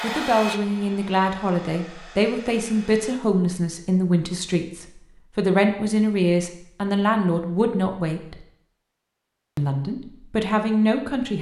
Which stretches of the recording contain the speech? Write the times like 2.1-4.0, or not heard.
0.0-8.4, 9.6-11.3.